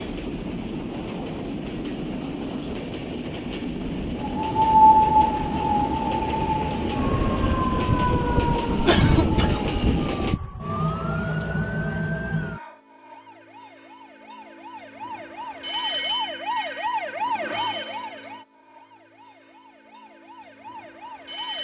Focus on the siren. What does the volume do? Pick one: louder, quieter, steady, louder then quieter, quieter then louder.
quieter.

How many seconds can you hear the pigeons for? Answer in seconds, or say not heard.
not heard.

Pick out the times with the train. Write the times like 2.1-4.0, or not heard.
0.0-10.4.